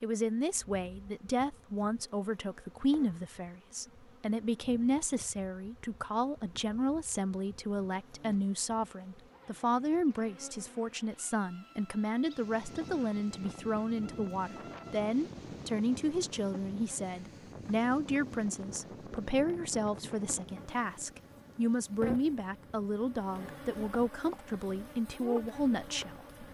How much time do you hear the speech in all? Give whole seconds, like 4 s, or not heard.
26 s.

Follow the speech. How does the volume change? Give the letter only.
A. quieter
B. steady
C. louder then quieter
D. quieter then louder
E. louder
B.